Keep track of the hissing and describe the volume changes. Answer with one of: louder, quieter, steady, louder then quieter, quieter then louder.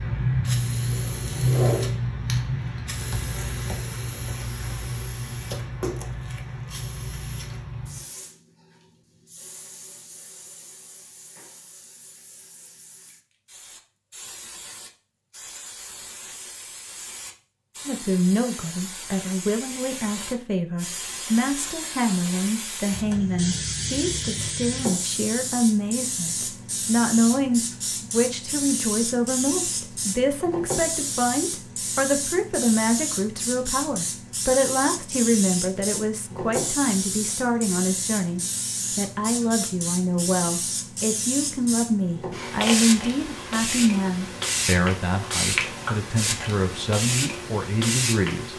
quieter then louder.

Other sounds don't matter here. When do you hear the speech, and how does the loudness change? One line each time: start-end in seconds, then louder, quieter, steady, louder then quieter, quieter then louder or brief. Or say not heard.
17.9-48.5 steady.